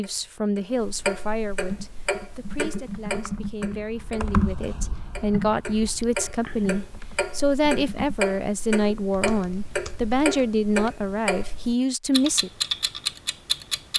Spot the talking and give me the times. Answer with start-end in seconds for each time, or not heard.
0.0-12.5.